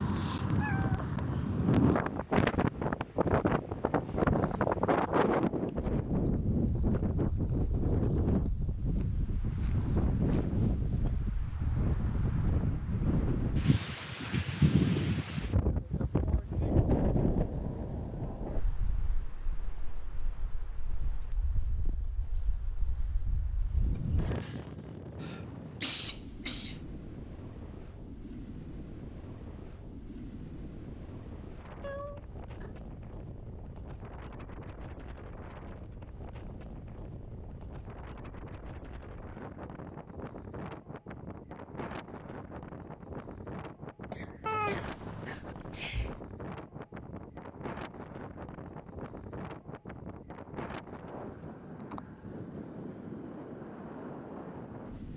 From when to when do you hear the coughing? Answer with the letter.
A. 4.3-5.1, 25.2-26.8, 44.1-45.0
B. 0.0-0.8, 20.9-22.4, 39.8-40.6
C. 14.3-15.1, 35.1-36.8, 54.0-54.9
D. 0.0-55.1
A.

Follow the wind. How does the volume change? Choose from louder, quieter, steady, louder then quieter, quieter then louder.
quieter.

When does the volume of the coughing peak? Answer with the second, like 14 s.
26 s.